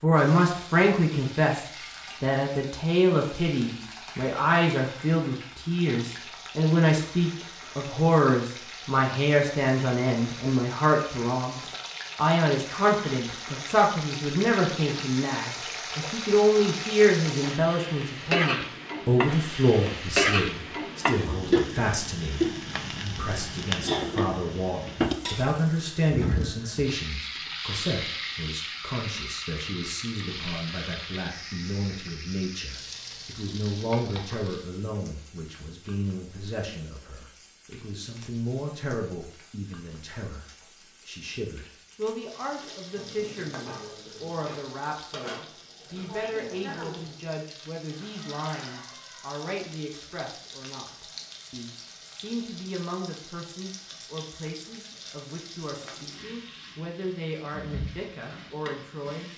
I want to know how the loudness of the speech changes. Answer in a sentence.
The volume of the speech goes down.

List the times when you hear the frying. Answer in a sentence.
The frying can be heard from 0.1 to 59.3 s.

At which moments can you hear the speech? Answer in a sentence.
You can hear the speech from 0.0 to 40.5 s and from 41.0 to 59.3 s.